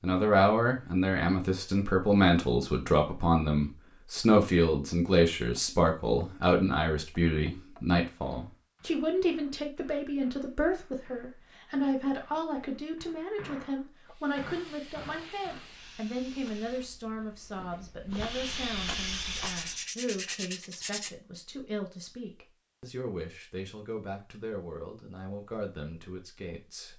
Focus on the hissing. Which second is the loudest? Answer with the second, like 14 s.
19 s.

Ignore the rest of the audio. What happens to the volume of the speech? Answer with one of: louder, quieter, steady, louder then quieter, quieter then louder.
quieter.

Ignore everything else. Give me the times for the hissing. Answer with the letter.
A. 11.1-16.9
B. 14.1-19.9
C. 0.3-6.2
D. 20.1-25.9
B.